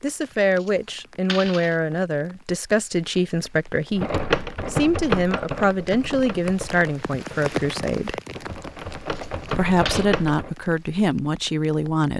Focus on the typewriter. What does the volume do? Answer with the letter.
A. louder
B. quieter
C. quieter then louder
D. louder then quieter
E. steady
C.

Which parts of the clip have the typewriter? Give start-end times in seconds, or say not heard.
4.0-10.5.